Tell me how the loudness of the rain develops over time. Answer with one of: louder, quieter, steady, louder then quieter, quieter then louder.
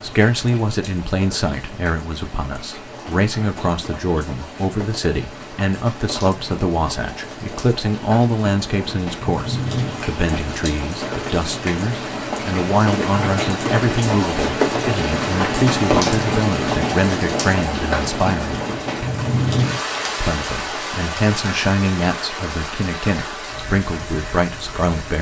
louder then quieter.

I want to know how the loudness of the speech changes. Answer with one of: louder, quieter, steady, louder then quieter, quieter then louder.
steady.